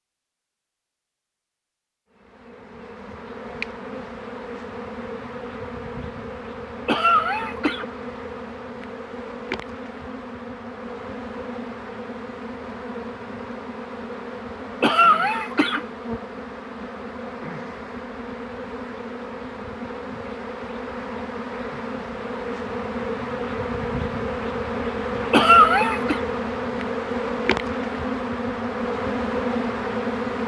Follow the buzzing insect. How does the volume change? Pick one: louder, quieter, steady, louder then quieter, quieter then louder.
louder.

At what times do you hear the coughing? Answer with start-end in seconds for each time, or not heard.
6.8-7.8, 14.8-15.8, 25.3-26.2.